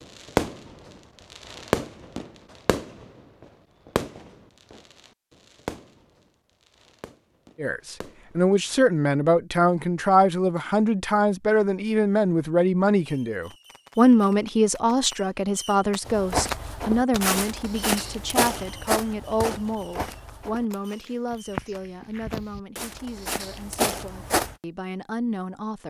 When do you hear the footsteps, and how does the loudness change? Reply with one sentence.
You can hear the footsteps from 16.1 to 24.6 s, getting quieter then louder.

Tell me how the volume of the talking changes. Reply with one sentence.
The volume of the talking goes down.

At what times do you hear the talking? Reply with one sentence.
You can hear the talking from 7.5 to 25.8 s.